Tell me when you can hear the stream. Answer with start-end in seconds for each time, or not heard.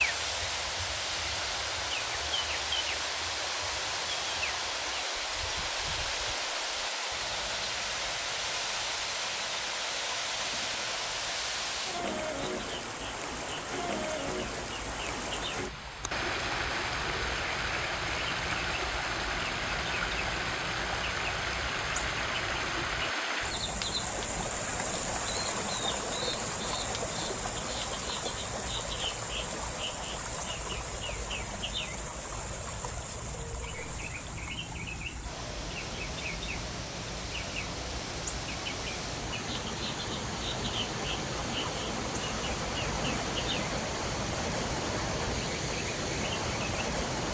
0.0-47.2.